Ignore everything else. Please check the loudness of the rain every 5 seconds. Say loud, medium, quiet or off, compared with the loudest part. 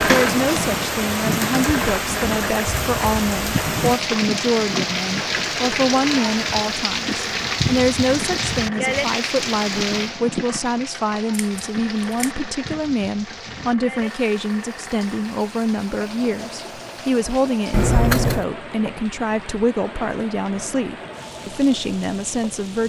loud, loud, quiet, quiet, quiet.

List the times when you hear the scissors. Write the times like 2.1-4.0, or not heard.
0.1-0.8, 11.3-12.3, 17.7-18.4.